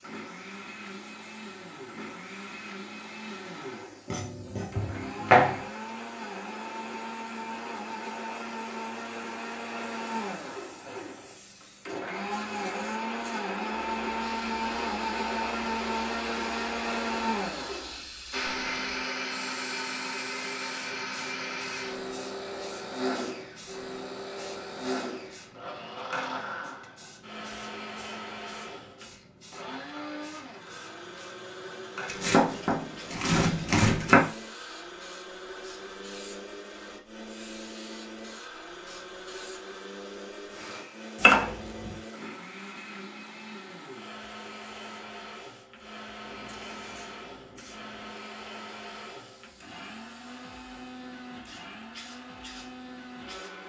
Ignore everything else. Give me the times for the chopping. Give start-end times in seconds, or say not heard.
4.0-5.6, 32.0-34.2, 41.1-42.0.